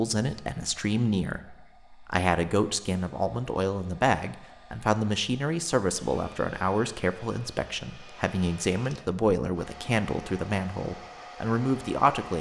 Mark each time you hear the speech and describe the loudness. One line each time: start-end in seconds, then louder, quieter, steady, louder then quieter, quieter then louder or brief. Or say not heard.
0.0-12.3 steady.